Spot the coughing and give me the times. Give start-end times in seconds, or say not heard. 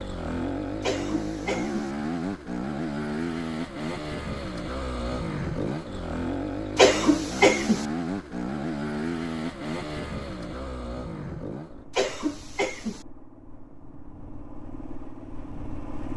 0.8-1.9, 6.8-7.8, 11.9-13.1.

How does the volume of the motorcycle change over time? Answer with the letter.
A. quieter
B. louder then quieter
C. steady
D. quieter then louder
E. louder
A.